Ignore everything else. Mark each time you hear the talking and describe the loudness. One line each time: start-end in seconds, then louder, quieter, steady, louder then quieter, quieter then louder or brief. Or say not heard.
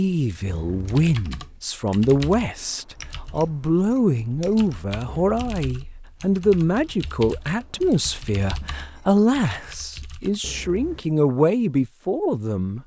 0.0-12.8 steady.